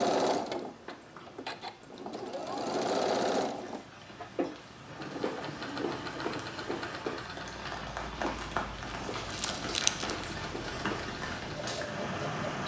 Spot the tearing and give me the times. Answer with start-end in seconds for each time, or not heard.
9.3-10.2.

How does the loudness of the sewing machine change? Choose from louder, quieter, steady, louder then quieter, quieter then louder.
louder then quieter.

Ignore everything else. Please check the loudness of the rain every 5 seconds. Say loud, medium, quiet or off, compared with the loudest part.
quiet, loud, loud.